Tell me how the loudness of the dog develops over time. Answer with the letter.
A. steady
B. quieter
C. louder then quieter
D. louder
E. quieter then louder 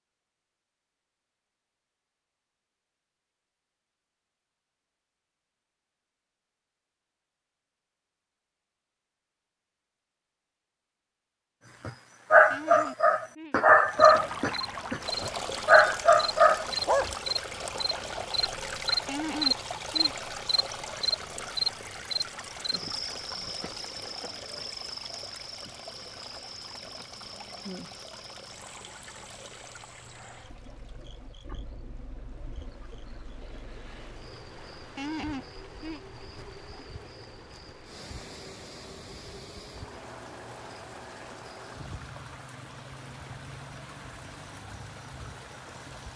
A.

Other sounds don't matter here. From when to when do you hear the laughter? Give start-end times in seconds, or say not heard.
12.5-13.6, 19.1-20.1, 35.0-36.0.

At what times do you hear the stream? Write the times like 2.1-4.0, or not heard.
13.8-46.1.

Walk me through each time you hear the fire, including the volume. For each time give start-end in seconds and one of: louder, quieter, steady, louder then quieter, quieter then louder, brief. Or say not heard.
not heard.